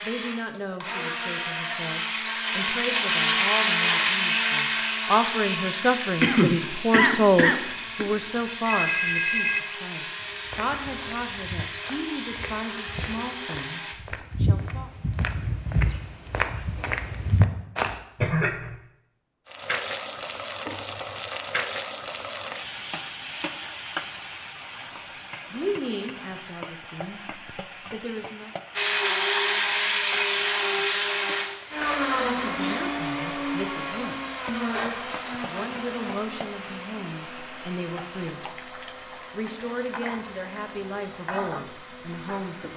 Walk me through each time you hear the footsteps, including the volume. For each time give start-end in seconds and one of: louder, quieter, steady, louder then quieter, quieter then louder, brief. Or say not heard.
10.2-18.0 louder.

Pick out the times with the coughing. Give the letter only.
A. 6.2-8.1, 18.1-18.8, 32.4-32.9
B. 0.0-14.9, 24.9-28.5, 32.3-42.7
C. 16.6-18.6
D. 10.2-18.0
A.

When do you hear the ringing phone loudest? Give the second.
9 s.